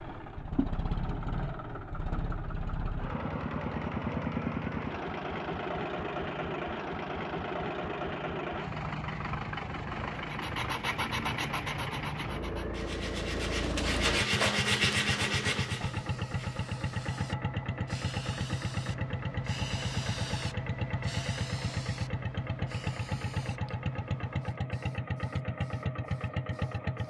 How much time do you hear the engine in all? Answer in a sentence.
You can hear the engine for 27 seconds altogether.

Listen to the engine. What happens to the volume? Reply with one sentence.
The loudness of the engine stays about the same.